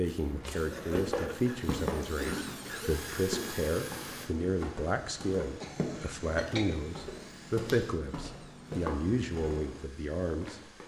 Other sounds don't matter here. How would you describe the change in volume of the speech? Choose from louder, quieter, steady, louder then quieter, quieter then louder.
steady.